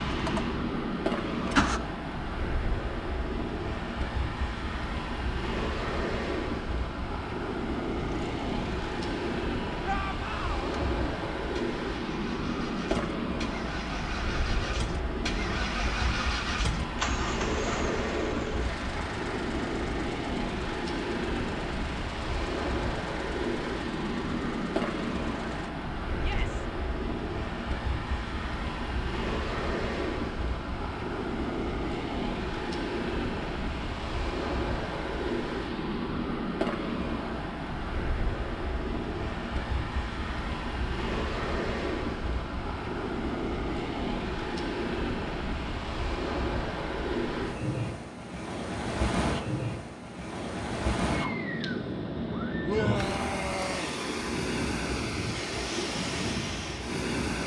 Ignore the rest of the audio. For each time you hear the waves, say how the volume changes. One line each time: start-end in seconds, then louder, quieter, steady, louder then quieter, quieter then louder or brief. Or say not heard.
0.0-57.4 steady.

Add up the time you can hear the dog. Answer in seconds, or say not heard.
not heard.